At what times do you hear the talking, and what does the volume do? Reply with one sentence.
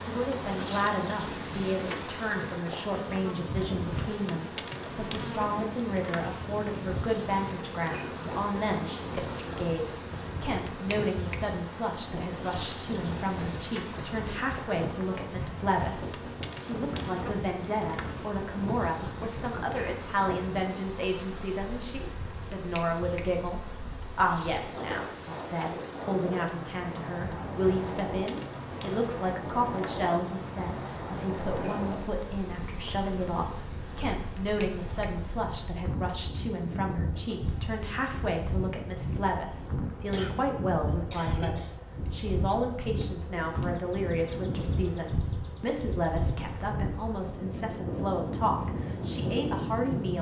The talking can be heard from 0.1 to 50.1 s, at a steady volume.